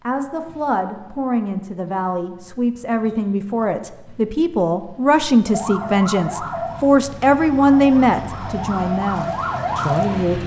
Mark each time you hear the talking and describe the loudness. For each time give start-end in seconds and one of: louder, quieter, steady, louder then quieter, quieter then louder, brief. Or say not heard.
0.0-10.4 louder then quieter.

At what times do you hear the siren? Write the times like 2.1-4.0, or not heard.
5.5-10.3.